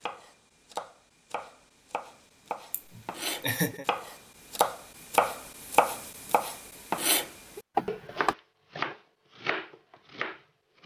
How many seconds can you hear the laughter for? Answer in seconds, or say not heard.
2 s.